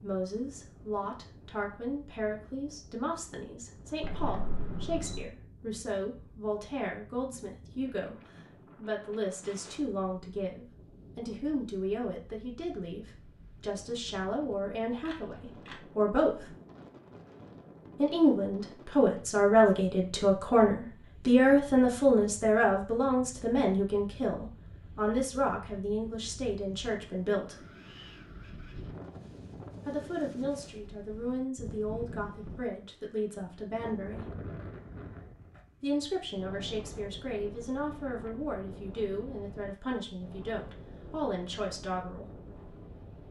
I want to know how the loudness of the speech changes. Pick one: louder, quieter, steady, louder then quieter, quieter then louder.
louder then quieter.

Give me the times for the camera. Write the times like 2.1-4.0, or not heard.
4.0-5.2, 15.1-15.8, 34.7-35.6.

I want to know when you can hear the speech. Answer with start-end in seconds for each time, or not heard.
0.0-16.4, 17.9-27.6, 29.9-34.3, 35.8-42.3.